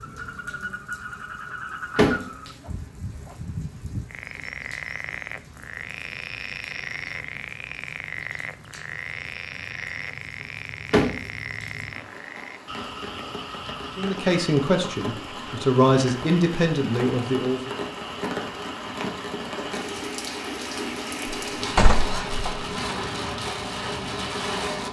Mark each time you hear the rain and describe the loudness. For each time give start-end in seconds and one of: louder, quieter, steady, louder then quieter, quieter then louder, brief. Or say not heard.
0.0-24.8 louder.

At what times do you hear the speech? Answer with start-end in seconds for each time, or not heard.
13.9-17.7.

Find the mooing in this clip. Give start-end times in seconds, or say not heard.
not heard.